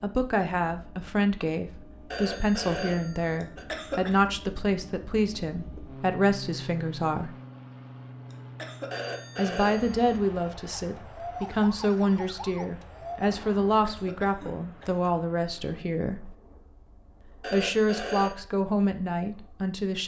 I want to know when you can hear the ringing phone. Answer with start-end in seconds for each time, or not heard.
2.1-3.6, 8.9-10.2, 17.4-18.4.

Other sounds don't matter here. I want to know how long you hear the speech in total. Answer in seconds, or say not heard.
17 s.